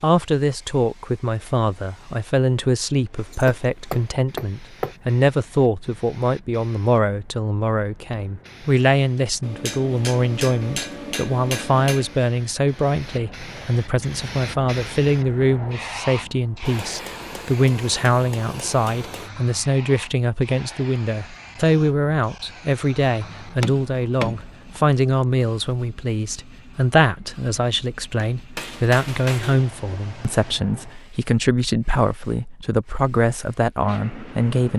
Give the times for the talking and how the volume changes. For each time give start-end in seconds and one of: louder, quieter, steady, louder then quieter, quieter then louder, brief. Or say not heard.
0.0-34.7 steady.